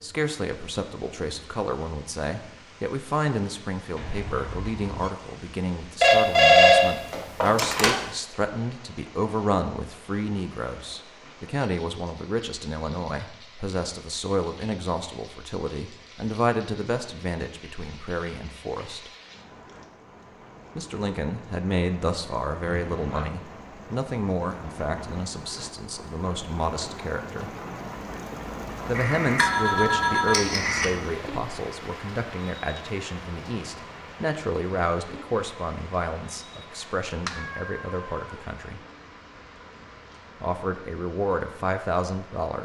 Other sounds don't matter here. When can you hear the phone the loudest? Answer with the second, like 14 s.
7 s.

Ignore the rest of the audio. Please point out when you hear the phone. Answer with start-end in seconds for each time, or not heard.
6.0-8.0, 28.9-30.9.